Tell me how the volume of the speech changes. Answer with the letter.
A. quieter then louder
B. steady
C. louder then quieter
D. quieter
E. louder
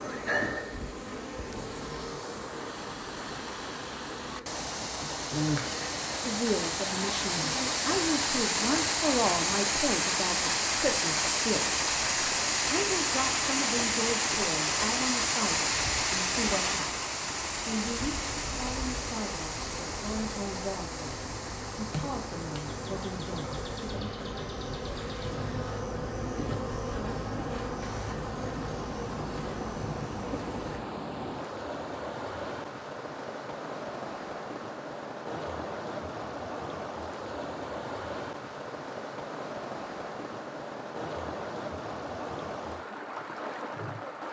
D.